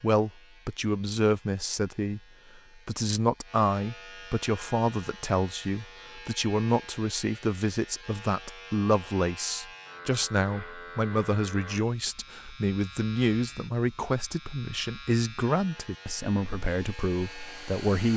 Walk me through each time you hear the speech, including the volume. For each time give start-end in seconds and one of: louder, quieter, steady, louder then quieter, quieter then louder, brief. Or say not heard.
0.0-2.2 brief
2.9-18.1 steady.